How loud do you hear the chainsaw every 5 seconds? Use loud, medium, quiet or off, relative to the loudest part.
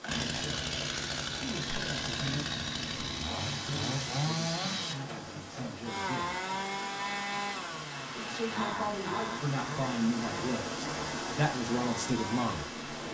loud, loud, medium.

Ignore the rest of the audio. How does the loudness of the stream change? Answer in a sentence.
The loudness of the stream goes up.